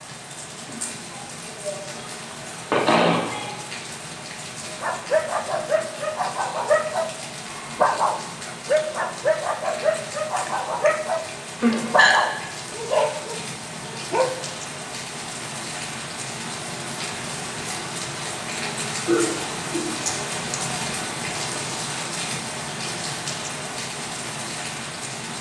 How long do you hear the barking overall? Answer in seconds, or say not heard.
10 s.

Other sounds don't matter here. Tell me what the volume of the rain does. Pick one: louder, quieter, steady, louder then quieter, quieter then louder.
louder.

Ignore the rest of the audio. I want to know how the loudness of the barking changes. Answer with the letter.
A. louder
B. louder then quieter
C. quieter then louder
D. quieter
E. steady
E.